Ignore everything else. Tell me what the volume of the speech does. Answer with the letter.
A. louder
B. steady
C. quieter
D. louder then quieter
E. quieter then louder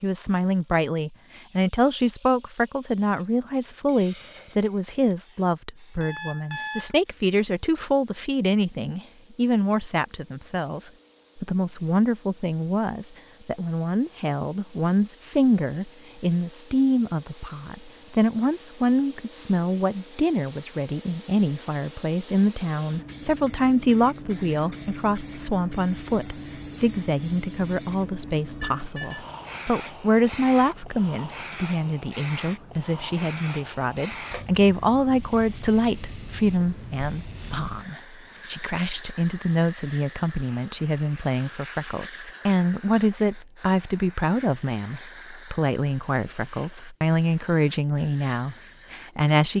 B.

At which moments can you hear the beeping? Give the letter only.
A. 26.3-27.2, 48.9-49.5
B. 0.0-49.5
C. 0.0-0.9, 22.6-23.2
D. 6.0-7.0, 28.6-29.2
D.